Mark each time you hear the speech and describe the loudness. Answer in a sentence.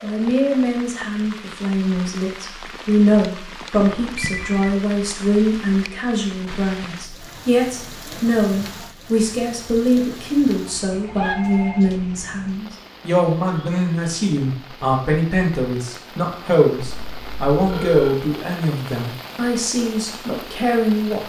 You can hear the speech from 0.0 to 21.2 s, at a steady volume.